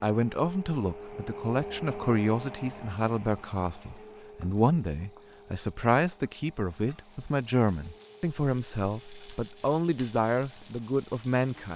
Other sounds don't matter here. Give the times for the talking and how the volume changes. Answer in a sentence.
You can hear the talking from 0.0 to 11.7 s, at a steady volume.